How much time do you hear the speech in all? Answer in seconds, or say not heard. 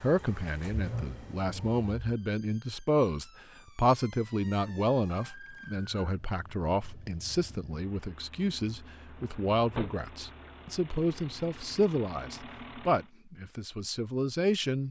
15 s.